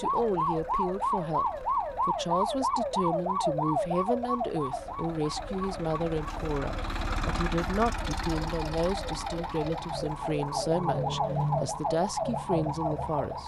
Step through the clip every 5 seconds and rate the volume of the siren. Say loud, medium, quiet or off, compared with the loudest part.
loud, medium, loud.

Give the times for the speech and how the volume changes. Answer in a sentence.
You can hear the speech from 0.0 to 13.4 s, at a steady volume.